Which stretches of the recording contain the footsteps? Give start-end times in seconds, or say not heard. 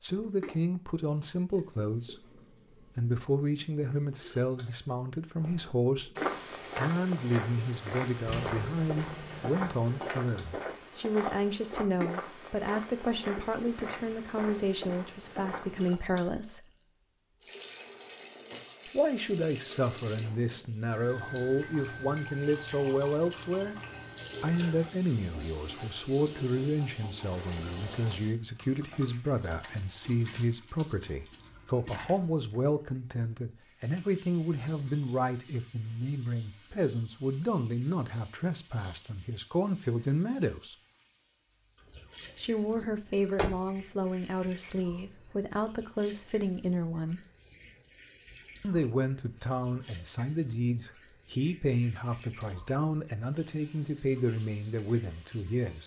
5.3-15.9.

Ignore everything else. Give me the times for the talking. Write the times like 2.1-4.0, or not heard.
0.0-16.7, 18.9-23.8, 24.4-40.8, 42.4-47.2, 48.6-55.8.